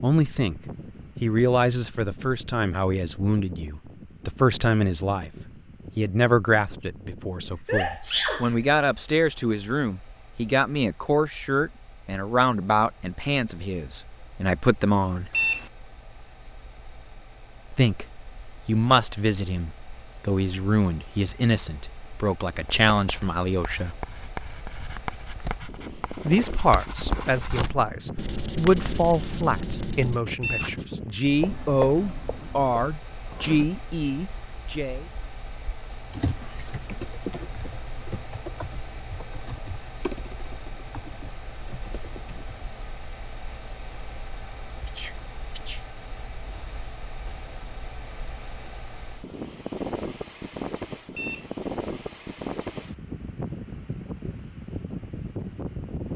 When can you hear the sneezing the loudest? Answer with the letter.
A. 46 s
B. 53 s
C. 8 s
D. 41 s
C.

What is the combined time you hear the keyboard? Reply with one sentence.
The keyboard can be heard for 7 seconds in total.